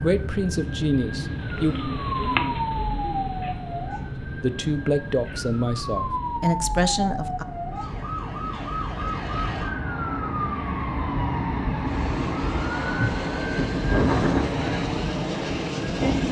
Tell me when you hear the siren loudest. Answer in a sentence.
The volume of the siren peaks at 14 seconds.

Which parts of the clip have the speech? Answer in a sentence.
The speech can be heard from 0.0 to 1.8 s and from 4.3 to 7.5 s.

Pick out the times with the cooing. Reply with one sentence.
The cooing can be heard from 0.5 to 6.4 s.